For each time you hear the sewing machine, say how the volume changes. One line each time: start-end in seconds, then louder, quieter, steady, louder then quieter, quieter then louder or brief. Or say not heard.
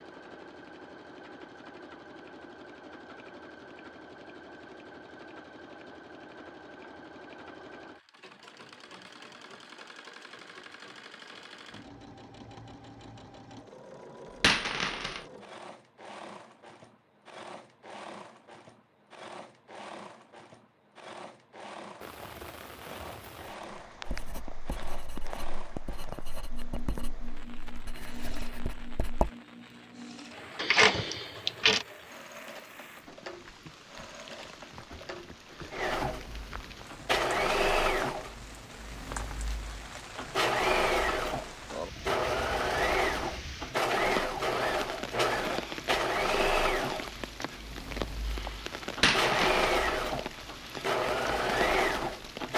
0.0-52.5 louder.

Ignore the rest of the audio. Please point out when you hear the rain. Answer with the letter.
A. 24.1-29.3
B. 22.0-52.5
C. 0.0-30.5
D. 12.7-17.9
B.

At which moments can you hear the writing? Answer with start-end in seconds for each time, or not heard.
24.1-29.3.